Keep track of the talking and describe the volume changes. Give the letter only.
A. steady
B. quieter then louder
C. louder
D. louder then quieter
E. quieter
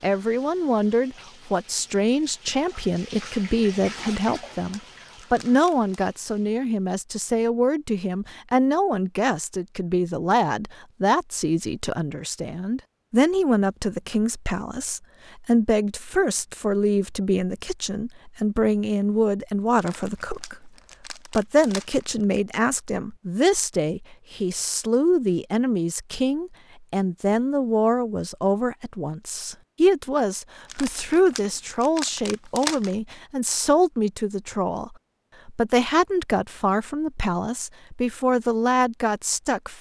A.